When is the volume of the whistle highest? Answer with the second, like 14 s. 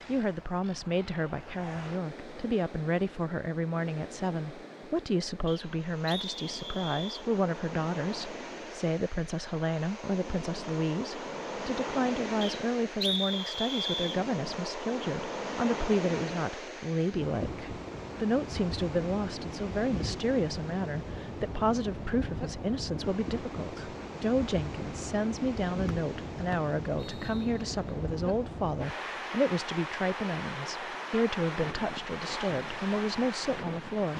13 s.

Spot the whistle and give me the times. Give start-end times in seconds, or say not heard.
5.5-7.2, 12.4-14.2, 25.9-27.4.